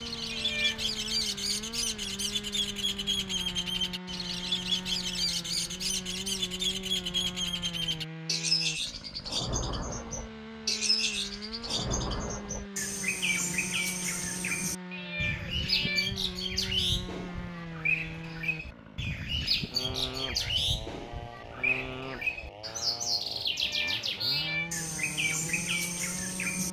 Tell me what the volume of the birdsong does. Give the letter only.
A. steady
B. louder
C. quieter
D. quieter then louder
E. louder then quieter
A.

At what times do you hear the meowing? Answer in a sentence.
The meowing can be heard from 0.3 to 0.9 s, from 14.9 to 16.1 s and from 23.5 to 24.7 s.